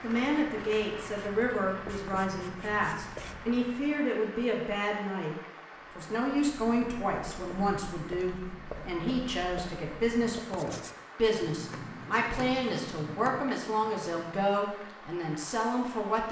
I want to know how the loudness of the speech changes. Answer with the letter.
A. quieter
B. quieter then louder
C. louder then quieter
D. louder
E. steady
E.